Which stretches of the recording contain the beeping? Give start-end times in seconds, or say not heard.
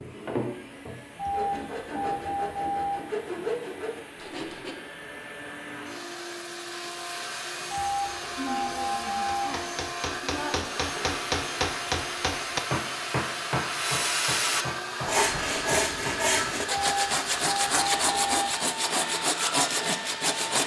1.1-3.0, 7.7-9.6, 16.7-18.6.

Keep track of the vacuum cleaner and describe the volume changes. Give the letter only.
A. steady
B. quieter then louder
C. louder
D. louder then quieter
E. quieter
C.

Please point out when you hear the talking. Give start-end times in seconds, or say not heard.
8.3-10.7.